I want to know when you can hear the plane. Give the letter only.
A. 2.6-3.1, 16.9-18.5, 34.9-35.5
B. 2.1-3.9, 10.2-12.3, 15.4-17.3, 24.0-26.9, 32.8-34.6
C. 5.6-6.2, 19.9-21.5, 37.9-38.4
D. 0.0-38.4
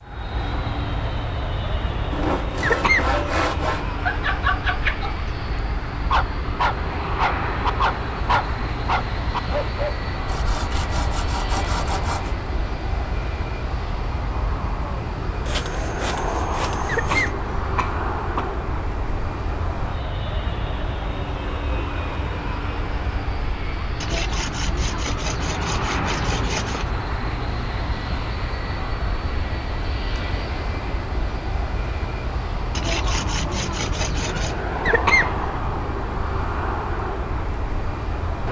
D.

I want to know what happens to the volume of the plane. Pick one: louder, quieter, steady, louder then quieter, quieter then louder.
steady.